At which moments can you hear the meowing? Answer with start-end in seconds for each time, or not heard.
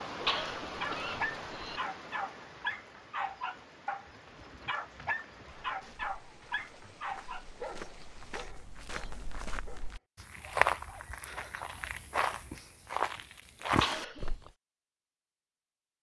not heard.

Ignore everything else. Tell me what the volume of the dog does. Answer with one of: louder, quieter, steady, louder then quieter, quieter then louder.
quieter.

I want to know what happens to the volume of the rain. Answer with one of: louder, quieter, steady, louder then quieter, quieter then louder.
quieter.